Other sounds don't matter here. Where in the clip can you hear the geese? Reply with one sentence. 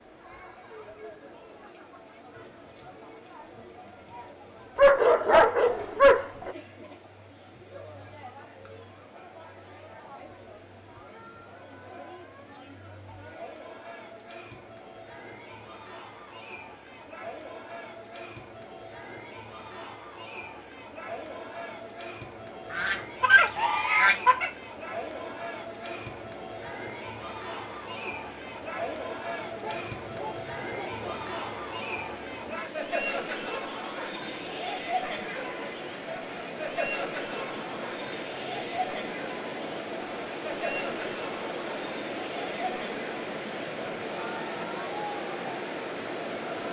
You can hear the geese from 22.7 to 24.5 s.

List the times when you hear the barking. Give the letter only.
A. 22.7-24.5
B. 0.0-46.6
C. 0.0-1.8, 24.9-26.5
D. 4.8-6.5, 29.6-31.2
D.